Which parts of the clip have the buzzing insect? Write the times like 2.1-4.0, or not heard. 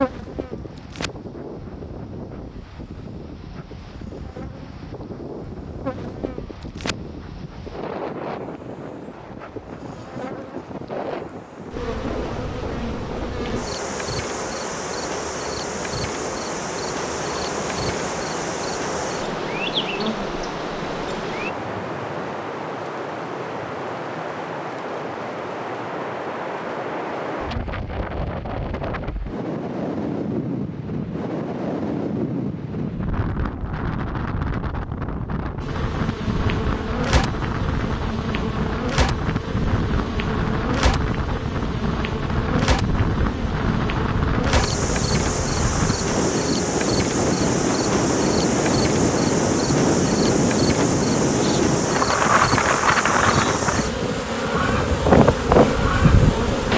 0.0-21.5, 35.6-56.7.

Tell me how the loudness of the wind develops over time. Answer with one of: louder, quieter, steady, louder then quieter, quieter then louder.
louder.